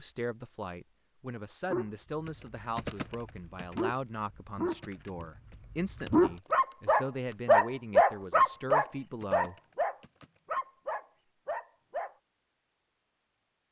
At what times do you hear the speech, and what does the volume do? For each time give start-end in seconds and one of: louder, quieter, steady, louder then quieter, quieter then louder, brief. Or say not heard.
0.0-9.6 steady.